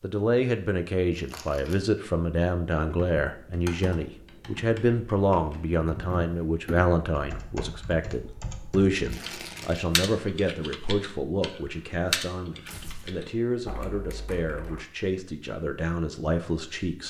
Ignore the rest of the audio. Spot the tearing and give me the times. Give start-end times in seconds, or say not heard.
1.1-1.8, 9.1-9.8, 12.7-13.2.